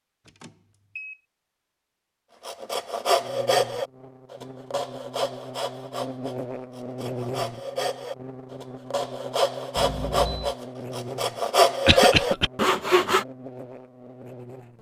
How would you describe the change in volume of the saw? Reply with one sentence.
The loudness of the saw goes down, then up.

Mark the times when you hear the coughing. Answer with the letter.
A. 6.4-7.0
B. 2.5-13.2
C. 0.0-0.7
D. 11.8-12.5
D.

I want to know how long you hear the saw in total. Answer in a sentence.
The saw can be heard for 11 seconds in total.